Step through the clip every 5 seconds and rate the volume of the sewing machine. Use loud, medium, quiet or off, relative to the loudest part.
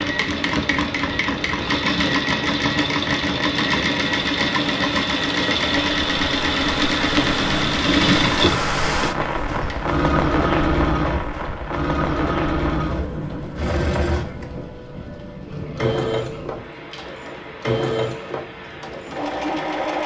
loud, loud, loud, medium.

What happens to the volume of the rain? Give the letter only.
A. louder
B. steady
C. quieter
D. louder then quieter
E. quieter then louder
D.